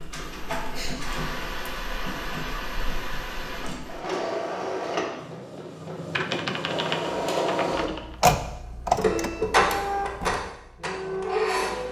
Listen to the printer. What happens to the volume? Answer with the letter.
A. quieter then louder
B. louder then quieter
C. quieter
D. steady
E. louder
E.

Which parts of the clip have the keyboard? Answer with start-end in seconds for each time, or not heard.
6.1-8.2.